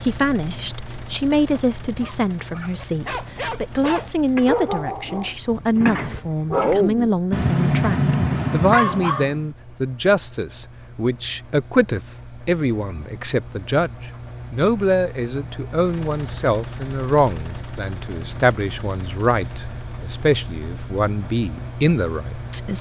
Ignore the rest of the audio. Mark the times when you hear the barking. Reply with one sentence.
The barking can be heard from 1.9 to 9.4 s.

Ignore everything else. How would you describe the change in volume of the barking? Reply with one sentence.
The loudness of the barking goes up.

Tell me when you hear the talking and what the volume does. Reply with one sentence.
The talking can be heard from 0.0 to 22.7 s, at a steady volume.